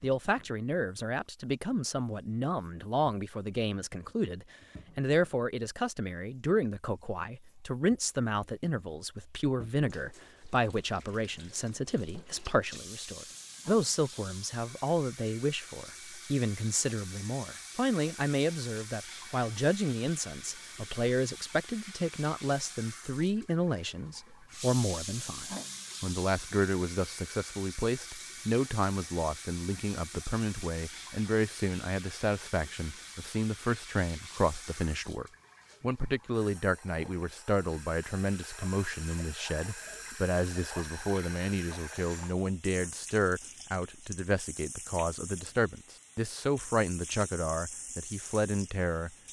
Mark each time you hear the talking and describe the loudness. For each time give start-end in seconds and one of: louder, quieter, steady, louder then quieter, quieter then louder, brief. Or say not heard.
0.0-49.1 steady.